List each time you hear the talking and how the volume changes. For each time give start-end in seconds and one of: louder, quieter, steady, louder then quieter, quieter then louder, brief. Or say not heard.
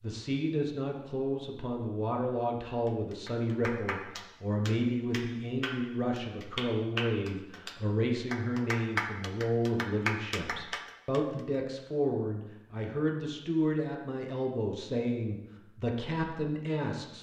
0.0-17.1 steady.